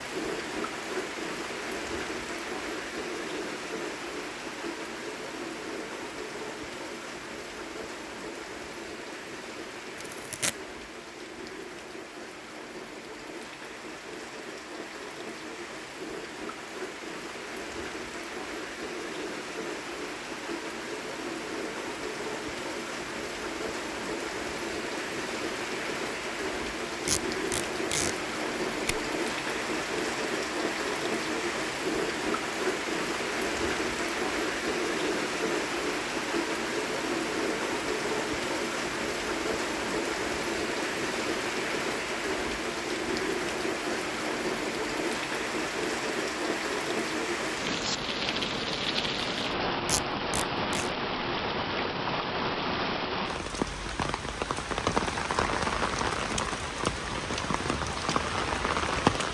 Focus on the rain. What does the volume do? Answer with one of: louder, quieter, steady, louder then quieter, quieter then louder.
louder.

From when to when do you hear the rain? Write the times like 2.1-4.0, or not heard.
0.0-59.2.